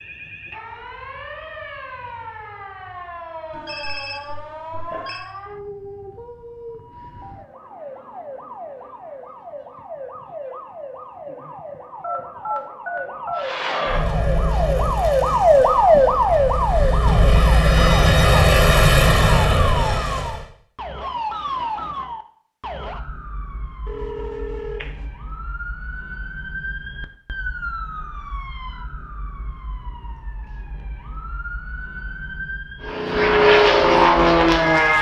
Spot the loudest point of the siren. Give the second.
16 s.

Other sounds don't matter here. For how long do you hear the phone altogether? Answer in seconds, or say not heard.
4 s.